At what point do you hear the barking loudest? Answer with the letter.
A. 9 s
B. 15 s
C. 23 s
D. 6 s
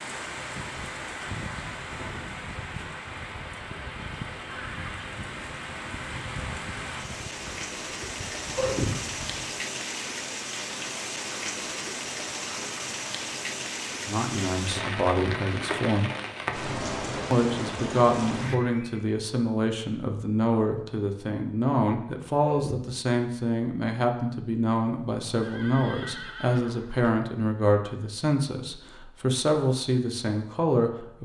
A.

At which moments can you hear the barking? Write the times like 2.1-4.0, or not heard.
8.3-9.1, 22.2-22.9.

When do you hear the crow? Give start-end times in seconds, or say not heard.
0.5-9.6.